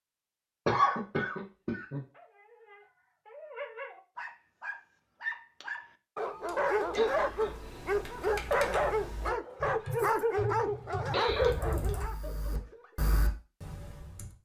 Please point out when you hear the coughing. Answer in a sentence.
You can hear the coughing from 0.7 to 2.0 s, from 6.9 to 7.5 s and from 10.3 to 11.9 s.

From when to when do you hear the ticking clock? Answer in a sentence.
You can't hear the ticking clock here.